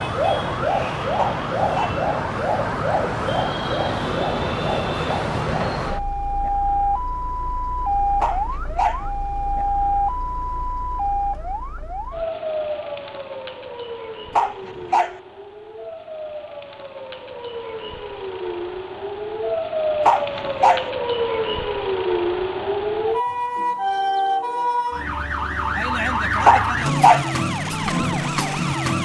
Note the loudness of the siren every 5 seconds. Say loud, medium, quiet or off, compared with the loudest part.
loud, loud, medium, medium, loud, loud.